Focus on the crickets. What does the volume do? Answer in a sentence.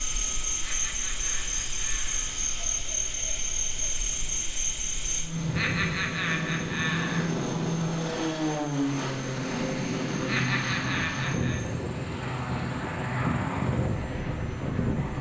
The volume of the crickets goes down.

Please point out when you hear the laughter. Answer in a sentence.
You can hear the laughter from 0.6 to 2.4 s, from 5.5 to 7.3 s and from 10.2 to 11.6 s.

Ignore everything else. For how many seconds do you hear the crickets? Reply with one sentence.
The crickets can be heard for 15 seconds in total.